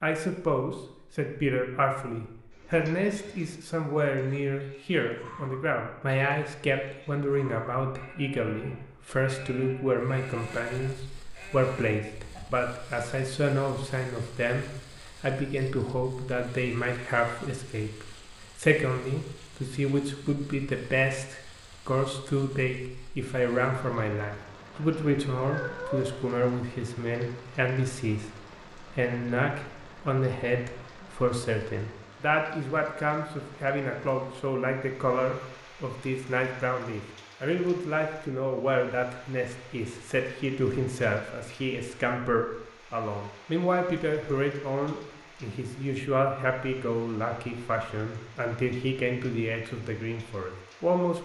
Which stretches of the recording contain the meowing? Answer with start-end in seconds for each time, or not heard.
25.4-26.1.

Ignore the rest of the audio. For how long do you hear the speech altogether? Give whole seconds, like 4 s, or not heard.
51 s.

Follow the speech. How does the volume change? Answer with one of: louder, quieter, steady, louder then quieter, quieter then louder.
steady.